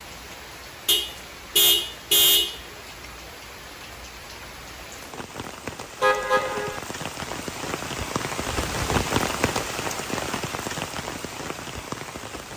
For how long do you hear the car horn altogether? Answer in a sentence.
You can hear the car horn for 3 seconds altogether.